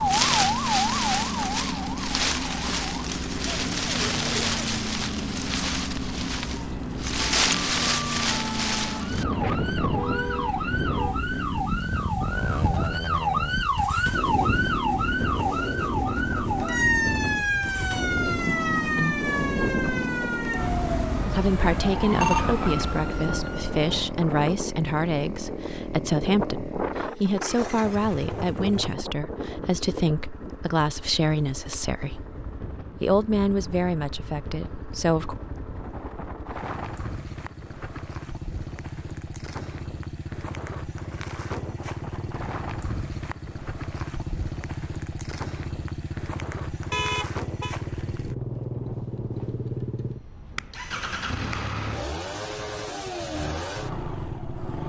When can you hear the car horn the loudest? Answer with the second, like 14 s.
47 s.